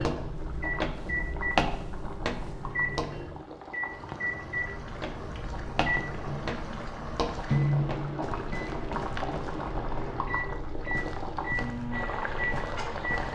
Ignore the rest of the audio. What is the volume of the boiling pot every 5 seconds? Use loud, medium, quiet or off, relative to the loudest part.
medium, loud, loud.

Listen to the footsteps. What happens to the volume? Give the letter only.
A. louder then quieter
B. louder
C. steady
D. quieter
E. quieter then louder
D.